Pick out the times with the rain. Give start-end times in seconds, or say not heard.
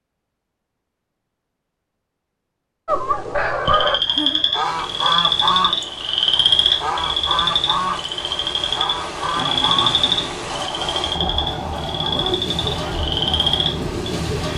4.6-14.5.